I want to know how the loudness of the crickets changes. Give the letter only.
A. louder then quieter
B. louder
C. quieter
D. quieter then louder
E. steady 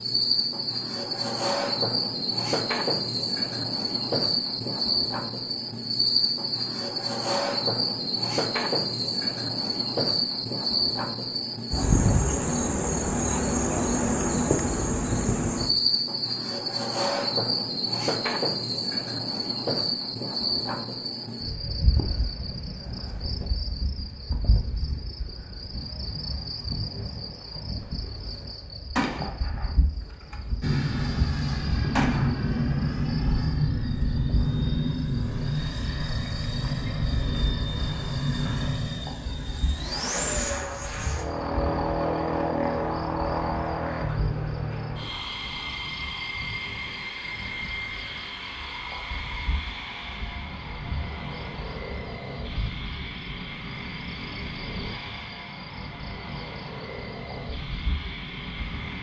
C.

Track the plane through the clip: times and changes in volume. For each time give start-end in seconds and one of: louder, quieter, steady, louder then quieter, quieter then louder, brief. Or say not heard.
30.6-58.9 quieter.